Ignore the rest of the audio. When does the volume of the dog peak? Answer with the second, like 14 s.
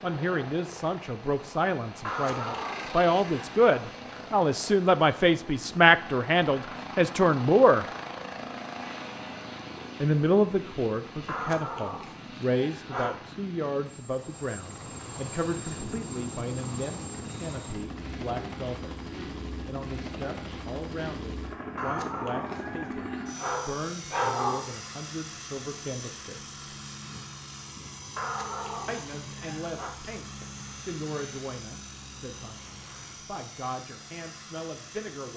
24 s.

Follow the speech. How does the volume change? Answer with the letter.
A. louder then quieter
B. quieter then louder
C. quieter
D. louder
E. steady
C.